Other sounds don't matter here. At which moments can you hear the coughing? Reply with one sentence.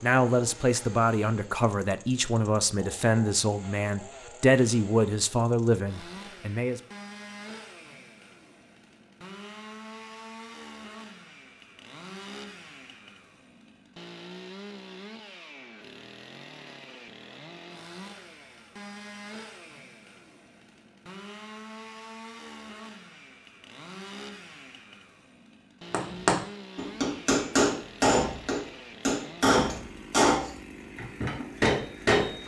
The coughing can't be heard in this clip.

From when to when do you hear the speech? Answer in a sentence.
You can hear the speech from 0.0 to 6.8 s.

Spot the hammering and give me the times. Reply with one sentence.
You can hear the hammering from 25.9 to 32.4 s.